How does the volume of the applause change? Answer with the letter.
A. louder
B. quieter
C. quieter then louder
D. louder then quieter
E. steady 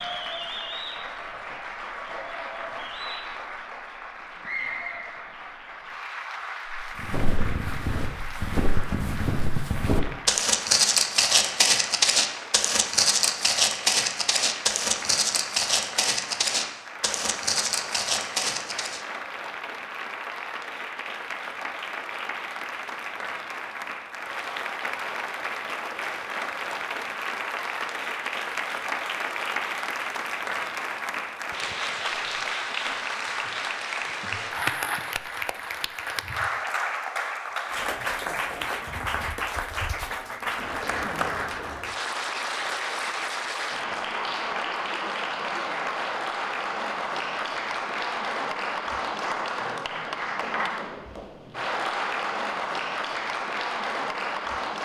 A.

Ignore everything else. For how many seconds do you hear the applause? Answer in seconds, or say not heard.
55 s.